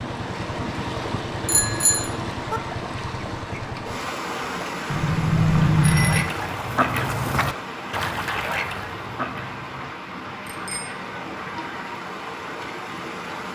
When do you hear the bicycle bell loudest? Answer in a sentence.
The loudest moment of the bicycle bell is at 6 seconds.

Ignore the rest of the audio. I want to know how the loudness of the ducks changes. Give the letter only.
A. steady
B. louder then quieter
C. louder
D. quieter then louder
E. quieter
E.